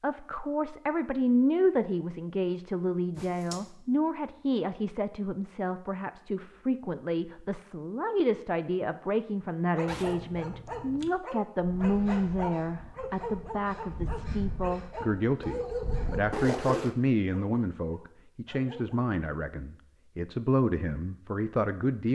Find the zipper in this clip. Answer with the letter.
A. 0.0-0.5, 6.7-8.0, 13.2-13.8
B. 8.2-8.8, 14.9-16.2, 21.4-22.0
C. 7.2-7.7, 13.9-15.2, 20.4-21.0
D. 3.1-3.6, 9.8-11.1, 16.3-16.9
D.